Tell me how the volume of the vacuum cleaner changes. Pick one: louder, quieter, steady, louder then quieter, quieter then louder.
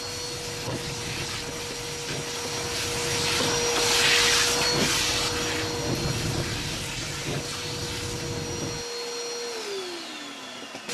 louder then quieter.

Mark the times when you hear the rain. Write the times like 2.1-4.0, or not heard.
0.0-8.8.